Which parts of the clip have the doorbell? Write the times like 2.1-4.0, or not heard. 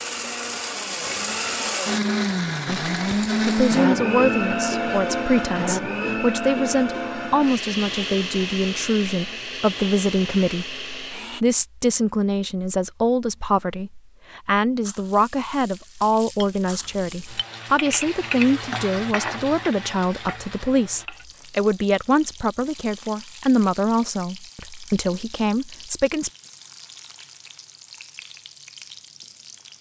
not heard.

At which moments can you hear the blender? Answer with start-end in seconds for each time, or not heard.
0.0-11.4.